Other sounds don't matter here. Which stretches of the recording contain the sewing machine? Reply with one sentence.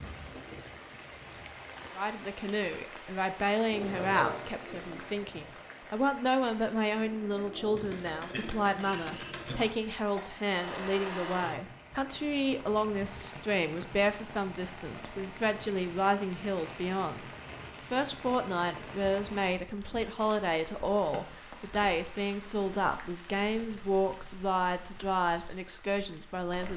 You can hear the sewing machine from 3.6 to 11.7 s.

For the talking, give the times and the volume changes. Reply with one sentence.
You can hear the talking from 1.9 to 17.2 s, at a steady volume; and from 17.9 to 26.7 s, at a steady volume.